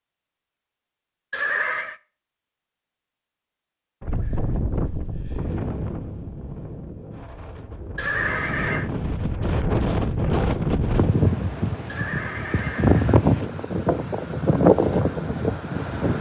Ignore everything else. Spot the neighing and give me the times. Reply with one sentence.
The neighing can be heard from 1.3 to 1.9 s, from 8.0 to 8.9 s and from 11.8 to 13.2 s.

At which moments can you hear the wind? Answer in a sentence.
You can hear the wind from 4.0 to 16.1 s.